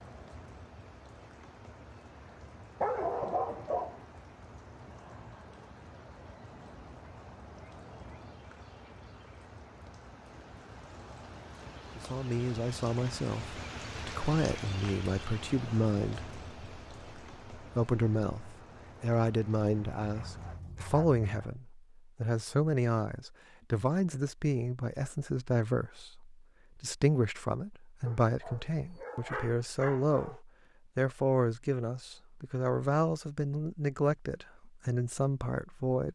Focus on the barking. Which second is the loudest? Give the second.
3 s.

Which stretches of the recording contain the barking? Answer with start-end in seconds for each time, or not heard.
2.8-4.0, 19.8-21.6, 28.1-30.4.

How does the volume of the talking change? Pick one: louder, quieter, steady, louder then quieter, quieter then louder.
steady.